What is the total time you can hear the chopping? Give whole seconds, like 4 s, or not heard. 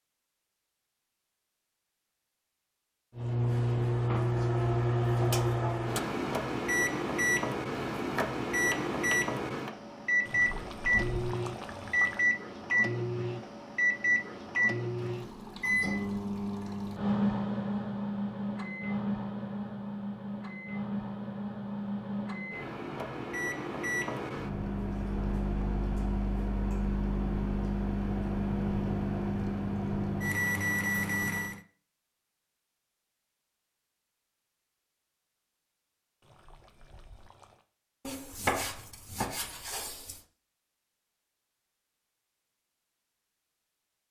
4 s.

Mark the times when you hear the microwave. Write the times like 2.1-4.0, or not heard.
3.1-31.6.